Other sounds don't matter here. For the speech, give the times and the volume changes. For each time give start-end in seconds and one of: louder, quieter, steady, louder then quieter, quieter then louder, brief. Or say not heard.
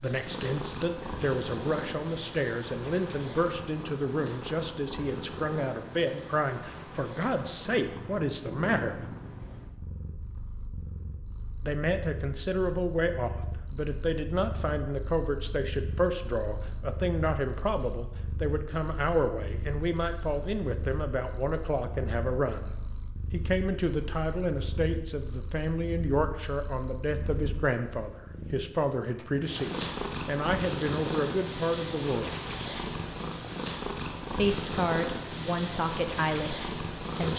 0.0-9.1 steady
11.6-22.7 steady
23.3-32.3 steady
34.4-37.3 brief.